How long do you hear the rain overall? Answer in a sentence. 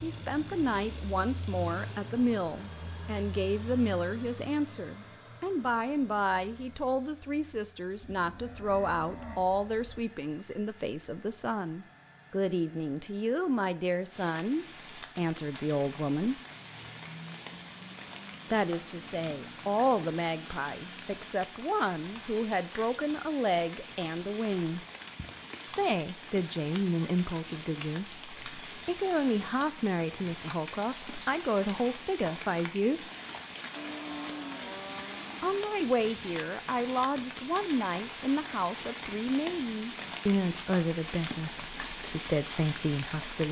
You can hear the rain for 29 seconds altogether.